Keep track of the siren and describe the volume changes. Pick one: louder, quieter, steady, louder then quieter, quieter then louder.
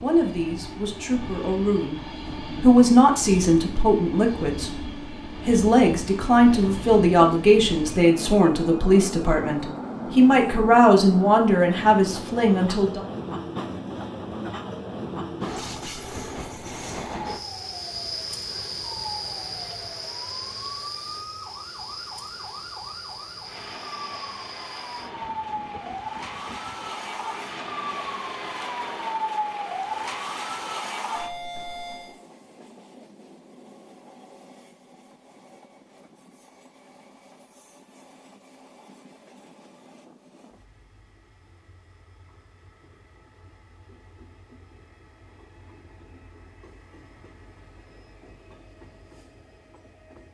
louder.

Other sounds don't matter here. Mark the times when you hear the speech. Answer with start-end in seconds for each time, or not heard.
0.0-13.0.